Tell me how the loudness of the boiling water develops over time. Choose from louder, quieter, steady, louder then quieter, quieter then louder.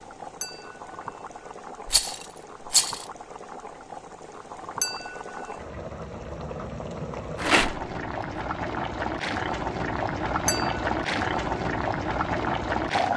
louder.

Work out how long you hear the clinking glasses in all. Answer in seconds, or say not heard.
2 s.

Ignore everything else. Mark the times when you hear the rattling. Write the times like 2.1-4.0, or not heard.
1.9-3.0, 7.3-7.8.